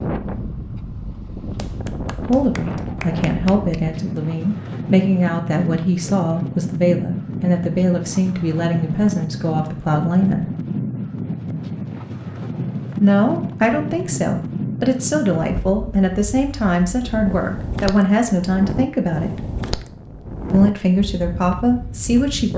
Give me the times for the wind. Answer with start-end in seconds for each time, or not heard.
0.0-22.5.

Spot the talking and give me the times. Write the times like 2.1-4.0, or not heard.
2.2-10.5, 13.0-19.4, 20.5-22.5.